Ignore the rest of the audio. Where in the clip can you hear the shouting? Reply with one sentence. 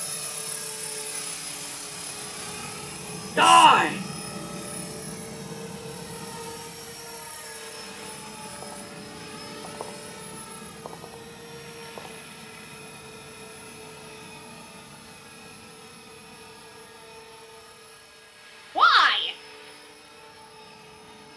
The shouting can be heard from 3.4 to 4.0 s and from 18.8 to 19.3 s.